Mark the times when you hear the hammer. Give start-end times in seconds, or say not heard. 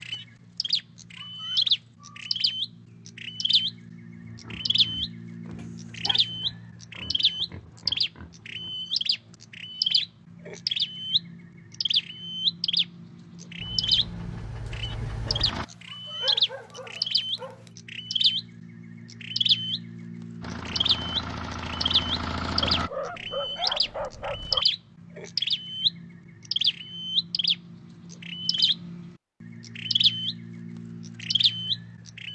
not heard.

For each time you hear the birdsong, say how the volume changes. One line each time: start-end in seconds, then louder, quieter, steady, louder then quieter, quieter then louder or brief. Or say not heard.
0.0-32.2 steady.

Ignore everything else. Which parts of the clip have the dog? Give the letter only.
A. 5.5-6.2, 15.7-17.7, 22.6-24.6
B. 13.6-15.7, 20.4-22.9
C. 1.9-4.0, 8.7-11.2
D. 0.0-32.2
A.